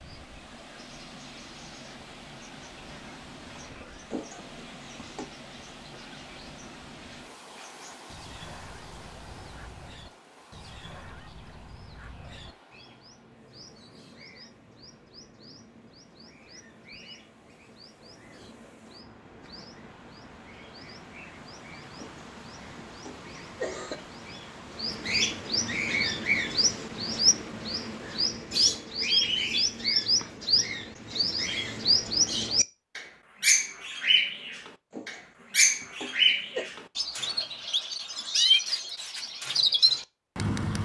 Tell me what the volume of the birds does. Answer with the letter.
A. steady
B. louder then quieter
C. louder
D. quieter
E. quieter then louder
C.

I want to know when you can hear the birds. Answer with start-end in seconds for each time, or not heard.
0.0-40.8.